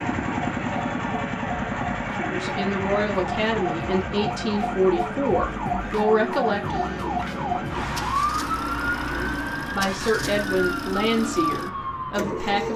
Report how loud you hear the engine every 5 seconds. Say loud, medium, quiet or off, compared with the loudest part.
loud, medium, loud.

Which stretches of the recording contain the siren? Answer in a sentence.
The siren can be heard from 0.0 to 12.7 s.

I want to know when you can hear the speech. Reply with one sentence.
The speech can be heard from 2.1 to 6.9 s and from 9.1 to 12.7 s.